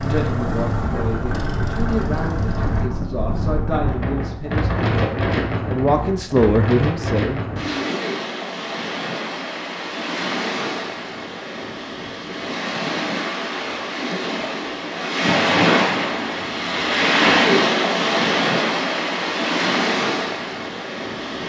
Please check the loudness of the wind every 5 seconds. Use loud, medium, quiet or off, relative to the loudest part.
medium, medium, medium, loud, medium.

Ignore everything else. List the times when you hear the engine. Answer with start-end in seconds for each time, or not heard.
0.0-2.9.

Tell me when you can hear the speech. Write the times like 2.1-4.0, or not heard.
0.0-7.4.